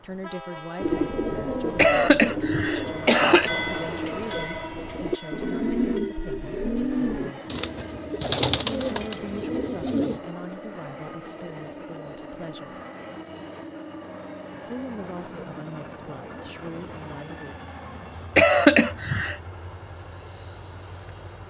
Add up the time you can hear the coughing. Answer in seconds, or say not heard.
3 s.